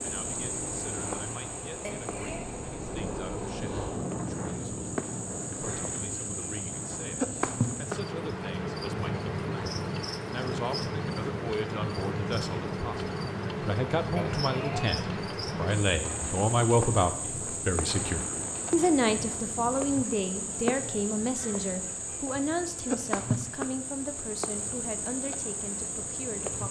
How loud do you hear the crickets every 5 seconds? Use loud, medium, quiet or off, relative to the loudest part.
medium, loud, loud, loud, loud, loud.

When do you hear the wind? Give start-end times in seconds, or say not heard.
0.0-19.8.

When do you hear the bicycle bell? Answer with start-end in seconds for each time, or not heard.
1.8-2.5, 14.2-14.9.